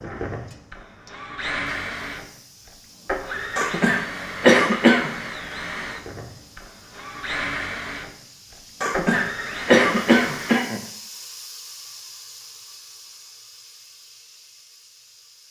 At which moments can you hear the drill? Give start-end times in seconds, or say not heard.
0.0-10.6.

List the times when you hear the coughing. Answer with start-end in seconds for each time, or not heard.
3.5-5.1, 8.8-10.8.